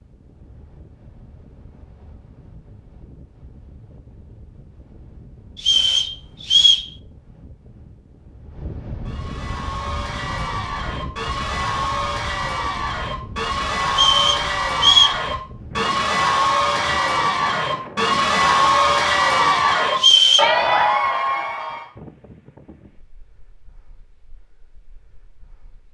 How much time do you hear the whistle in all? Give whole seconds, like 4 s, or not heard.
3 s.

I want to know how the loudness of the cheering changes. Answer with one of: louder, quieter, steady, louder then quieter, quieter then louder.
louder.